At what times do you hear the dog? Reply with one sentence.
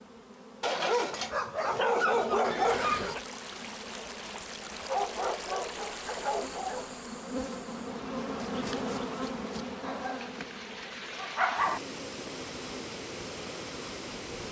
The dog can be heard from 0.6 to 3.2 s, from 4.8 to 7.0 s, from 9.8 to 10.3 s and from 11.2 to 11.8 s.